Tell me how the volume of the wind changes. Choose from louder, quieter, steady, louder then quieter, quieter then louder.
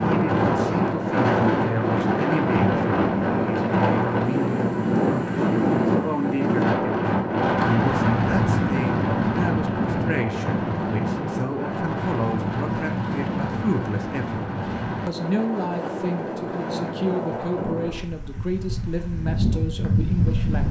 quieter.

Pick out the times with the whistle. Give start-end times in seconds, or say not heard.
not heard.